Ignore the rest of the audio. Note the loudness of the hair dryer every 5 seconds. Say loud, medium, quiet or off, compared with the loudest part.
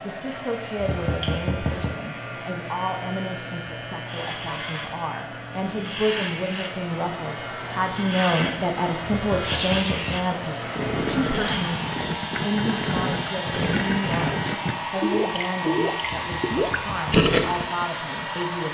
medium, medium, loud, loud.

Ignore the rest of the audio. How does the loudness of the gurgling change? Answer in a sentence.
The loudness of the gurgling goes up.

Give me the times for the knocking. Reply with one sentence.
The knocking can be heard from 0.8 to 1.9 s, from 9.1 to 10.2 s and from 16.0 to 17.2 s.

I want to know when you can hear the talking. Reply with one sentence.
You can hear the talking from 0.0 to 18.6 s.